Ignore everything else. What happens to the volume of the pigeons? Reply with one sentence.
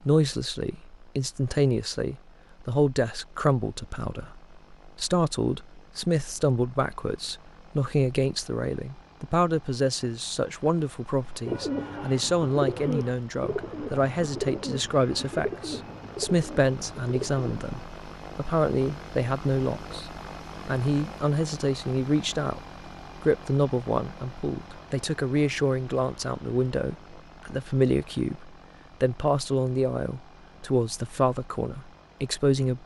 The loudness of the pigeons goes down.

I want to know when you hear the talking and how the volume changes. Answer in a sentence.
The talking can be heard from 0.1 to 32.8 s, at a steady volume.